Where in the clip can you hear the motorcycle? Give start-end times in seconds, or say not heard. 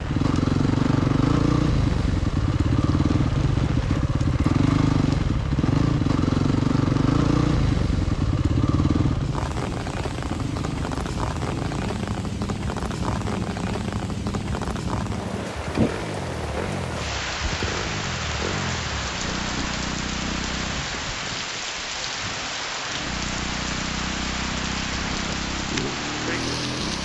0.0-20.9, 22.9-27.0.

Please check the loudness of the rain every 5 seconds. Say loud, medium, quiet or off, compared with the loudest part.
medium, medium, loud, loud, loud, loud.